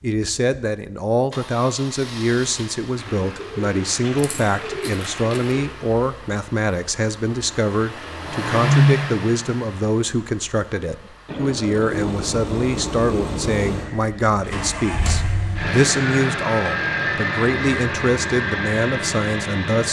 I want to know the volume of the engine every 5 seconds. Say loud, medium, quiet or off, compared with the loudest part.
quiet, loud, medium, loud.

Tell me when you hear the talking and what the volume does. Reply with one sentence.
You can hear the talking from 0.0 to 19.8 s, at a steady volume.